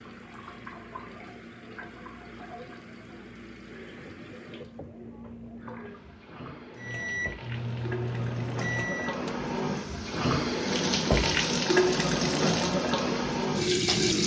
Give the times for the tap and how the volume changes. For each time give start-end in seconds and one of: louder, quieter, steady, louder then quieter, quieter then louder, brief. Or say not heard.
0.0-14.2 louder.